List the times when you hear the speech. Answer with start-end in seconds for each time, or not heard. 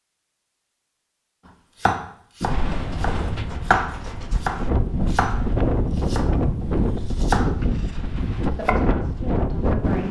8.5-10.0.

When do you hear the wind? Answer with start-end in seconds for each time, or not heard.
2.4-10.0.